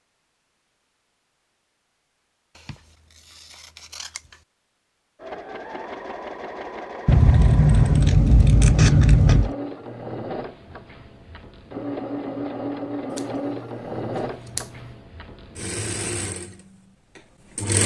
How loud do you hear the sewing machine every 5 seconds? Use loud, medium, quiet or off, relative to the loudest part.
off, loud, loud, loud.